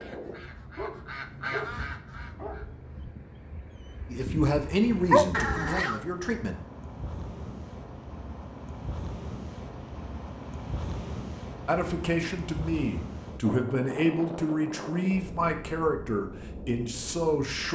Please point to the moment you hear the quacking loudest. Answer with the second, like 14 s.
2 s.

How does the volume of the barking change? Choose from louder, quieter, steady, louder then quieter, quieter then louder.
quieter then louder.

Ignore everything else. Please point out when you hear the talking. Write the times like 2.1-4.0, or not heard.
4.1-6.5, 11.7-17.6.